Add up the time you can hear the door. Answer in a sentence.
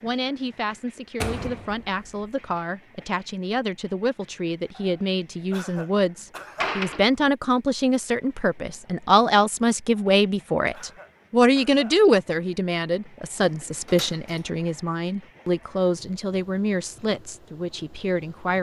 You can hear the door for 3 seconds altogether.